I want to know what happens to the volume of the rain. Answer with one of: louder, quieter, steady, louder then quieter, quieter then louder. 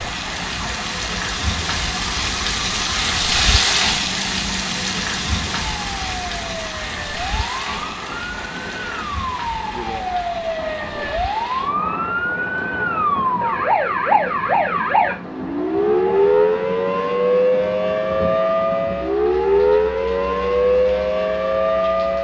quieter.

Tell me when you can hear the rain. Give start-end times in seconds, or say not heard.
0.0-22.1.